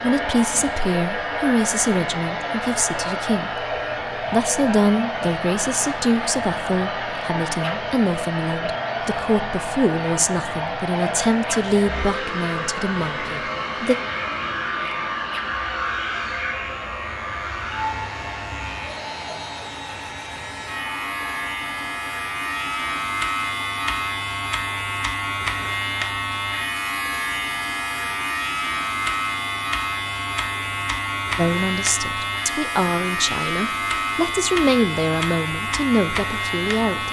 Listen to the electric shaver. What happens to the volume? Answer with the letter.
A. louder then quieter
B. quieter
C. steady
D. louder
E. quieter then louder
D.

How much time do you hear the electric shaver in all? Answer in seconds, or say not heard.
37 s.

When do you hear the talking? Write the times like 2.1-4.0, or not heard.
0.0-13.9, 31.4-37.0.